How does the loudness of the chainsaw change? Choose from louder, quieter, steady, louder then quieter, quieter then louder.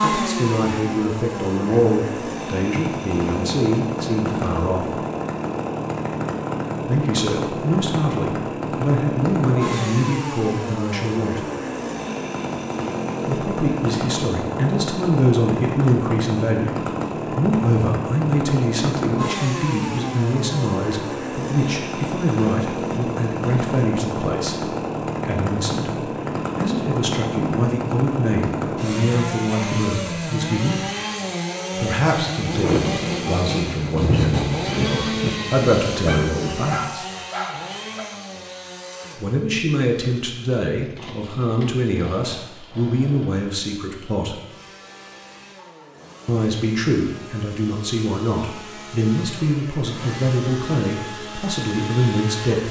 quieter.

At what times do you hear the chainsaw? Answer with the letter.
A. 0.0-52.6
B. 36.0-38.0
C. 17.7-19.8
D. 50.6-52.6
A.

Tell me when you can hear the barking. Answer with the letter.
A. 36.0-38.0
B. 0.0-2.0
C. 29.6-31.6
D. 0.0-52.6
A.